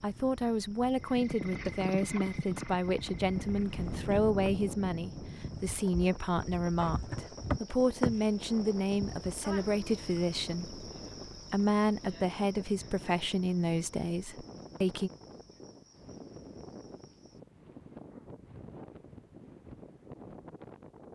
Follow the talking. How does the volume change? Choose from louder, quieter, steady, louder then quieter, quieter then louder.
steady.